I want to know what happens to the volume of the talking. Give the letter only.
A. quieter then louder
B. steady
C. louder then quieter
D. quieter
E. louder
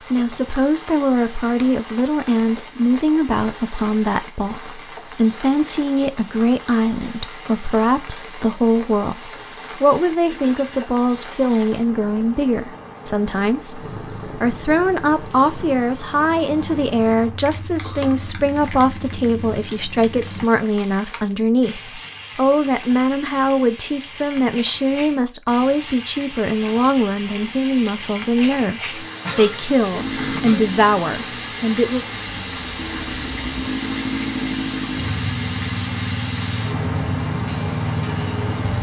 B.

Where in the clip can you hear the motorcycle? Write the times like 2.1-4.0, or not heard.
13.8-20.4, 29.9-38.7.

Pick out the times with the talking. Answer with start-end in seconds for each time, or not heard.
0.1-32.0.